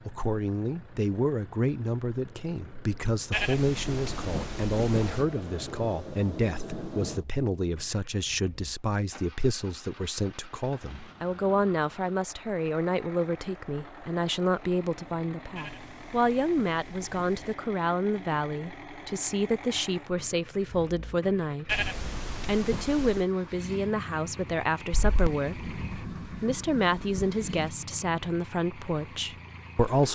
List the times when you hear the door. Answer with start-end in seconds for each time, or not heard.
not heard.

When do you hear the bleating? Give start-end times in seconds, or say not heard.
3.3-5.2, 15.6-17.6, 21.6-23.2.